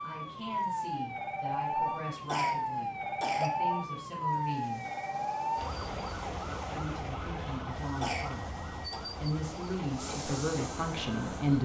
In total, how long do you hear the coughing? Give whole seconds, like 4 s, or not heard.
2 s.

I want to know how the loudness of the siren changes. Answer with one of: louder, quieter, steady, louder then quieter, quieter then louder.
quieter.